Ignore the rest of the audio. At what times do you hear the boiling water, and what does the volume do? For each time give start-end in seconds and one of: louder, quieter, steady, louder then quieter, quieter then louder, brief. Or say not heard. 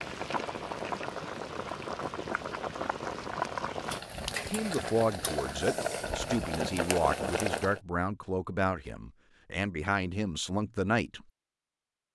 0.0-7.8 steady.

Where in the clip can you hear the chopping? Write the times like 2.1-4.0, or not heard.
not heard.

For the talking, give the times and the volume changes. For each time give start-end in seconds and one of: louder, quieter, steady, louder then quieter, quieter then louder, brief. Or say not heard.
4.5-11.2 steady.